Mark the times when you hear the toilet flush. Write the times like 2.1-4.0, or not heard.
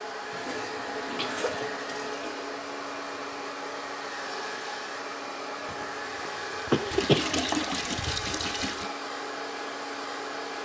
0.1-2.5, 6.9-8.9.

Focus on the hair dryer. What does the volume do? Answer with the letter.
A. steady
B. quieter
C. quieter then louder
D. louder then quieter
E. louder
A.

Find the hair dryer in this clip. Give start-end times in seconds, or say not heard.
0.0-10.5.